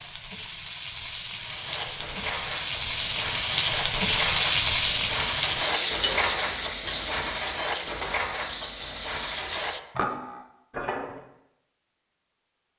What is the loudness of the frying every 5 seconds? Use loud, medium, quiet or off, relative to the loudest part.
loud, medium, off.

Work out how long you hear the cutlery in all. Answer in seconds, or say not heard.
10 s.